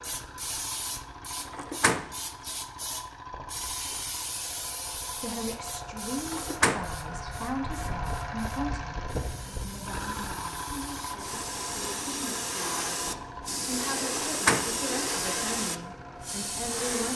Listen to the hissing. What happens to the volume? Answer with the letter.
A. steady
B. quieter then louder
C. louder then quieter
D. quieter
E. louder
B.